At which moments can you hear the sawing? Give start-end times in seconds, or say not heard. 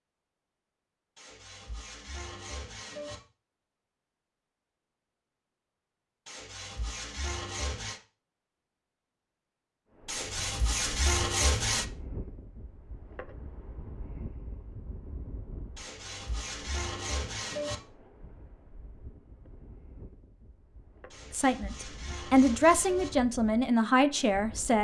1.1-3.2, 6.2-8.0, 10.1-11.8, 15.8-17.8, 21.1-23.1.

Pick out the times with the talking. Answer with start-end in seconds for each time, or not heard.
21.3-24.7.